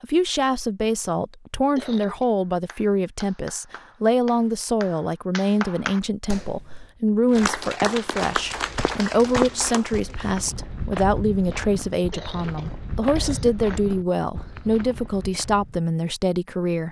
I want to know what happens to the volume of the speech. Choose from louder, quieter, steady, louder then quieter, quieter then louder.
steady.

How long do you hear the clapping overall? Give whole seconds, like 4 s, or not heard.
8 s.